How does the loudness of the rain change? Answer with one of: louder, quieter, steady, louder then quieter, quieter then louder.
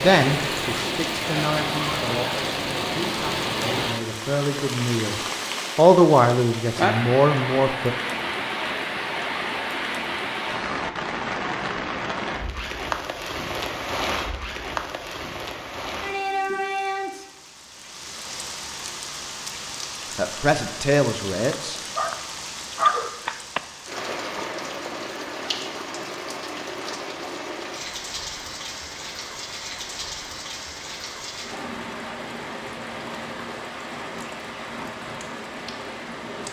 quieter.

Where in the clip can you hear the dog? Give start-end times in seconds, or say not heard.
21.5-23.6.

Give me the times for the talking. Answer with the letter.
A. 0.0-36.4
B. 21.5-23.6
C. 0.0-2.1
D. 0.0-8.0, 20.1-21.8
D.